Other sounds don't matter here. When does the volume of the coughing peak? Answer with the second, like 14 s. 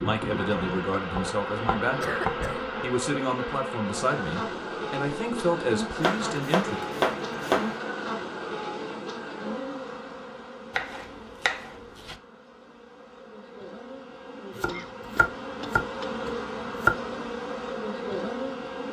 2 s.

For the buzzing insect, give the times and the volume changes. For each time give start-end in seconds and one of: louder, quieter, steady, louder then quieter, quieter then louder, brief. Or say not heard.
0.0-18.8 quieter then louder.